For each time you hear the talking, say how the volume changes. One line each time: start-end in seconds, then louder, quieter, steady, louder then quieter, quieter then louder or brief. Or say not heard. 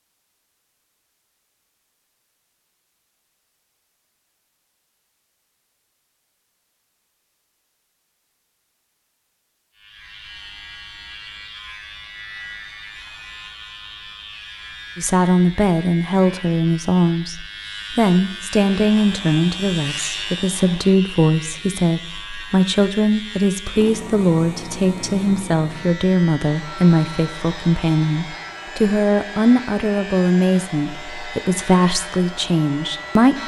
14.9-33.4 steady.